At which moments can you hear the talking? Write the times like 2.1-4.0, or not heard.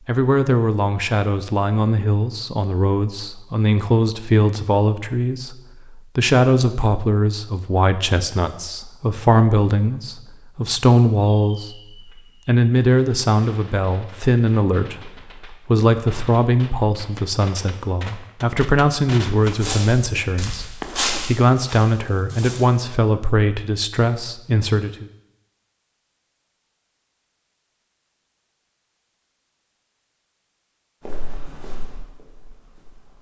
0.1-11.8, 12.4-25.1.